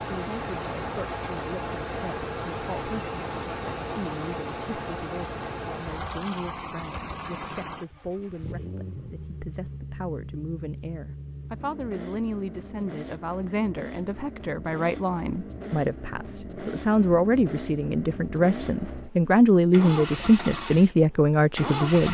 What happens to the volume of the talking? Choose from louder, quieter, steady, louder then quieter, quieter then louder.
louder.